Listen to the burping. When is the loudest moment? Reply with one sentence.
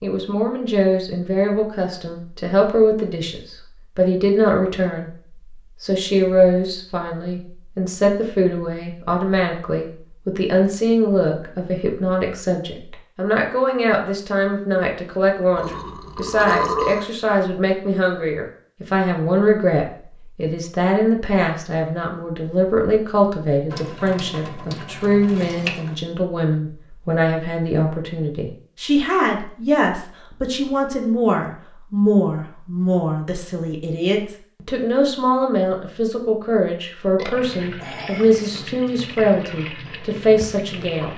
The loudest moment of the burping is at 17 seconds.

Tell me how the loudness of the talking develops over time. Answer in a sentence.
The loudness of the talking stays about the same.